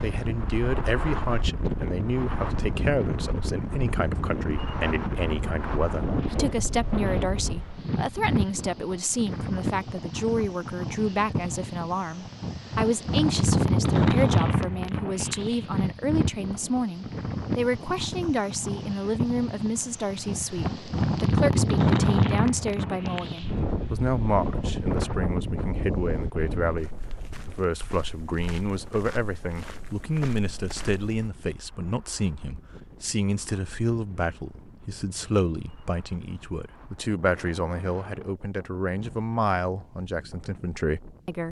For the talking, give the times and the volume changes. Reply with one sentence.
The talking can be heard from 0.0 to 41.4 s, at a steady volume.